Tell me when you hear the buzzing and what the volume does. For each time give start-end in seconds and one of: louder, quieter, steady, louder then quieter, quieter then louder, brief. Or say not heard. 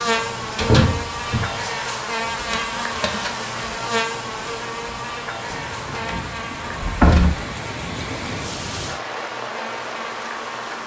0.0-10.8 quieter.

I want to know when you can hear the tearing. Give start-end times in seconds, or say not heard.
2.4-3.4.